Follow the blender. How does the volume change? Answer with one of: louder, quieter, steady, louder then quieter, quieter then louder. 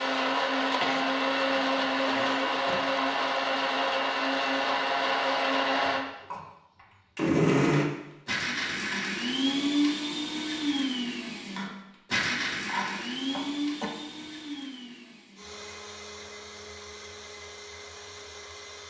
quieter.